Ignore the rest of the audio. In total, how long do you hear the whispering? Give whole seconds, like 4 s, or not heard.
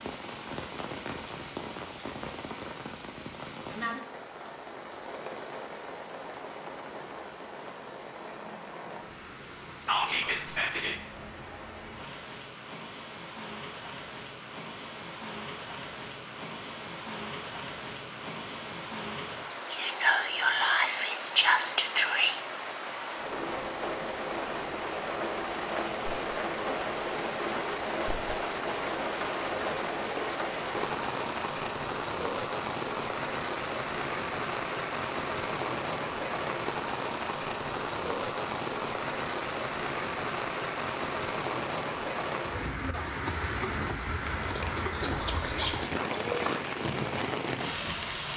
6 s.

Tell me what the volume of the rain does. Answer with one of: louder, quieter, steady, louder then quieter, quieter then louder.
louder.